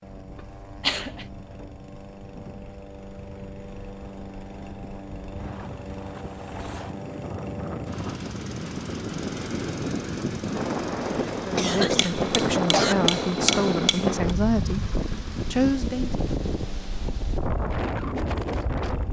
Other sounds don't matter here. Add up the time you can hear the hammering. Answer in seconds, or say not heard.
2 s.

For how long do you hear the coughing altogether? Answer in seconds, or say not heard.
2 s.